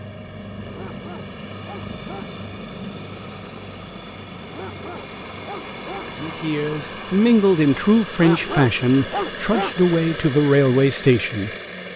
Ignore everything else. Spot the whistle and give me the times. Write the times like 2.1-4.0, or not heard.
not heard.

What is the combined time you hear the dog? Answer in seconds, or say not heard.
5 s.